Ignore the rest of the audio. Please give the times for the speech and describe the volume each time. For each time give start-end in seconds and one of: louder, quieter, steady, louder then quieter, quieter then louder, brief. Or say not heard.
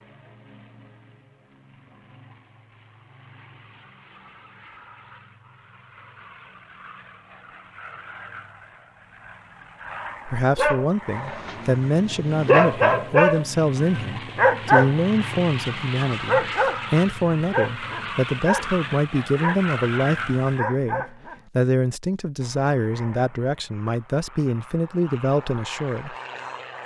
10.2-26.1 steady.